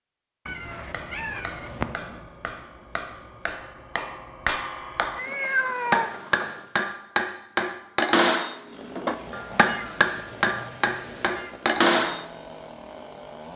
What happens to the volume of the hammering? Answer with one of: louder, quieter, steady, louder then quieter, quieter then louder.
louder.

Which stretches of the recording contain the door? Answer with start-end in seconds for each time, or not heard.
not heard.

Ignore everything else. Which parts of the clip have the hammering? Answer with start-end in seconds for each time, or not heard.
0.8-12.2.